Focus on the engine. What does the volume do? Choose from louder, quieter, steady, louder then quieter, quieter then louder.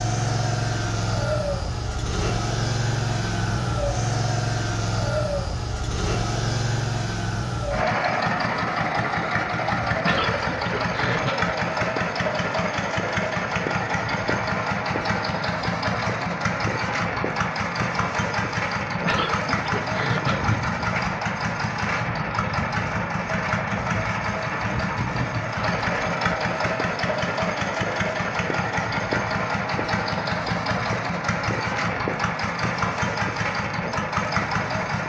steady.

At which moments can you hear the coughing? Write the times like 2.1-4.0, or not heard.
9.9-11.6, 19.0-20.6.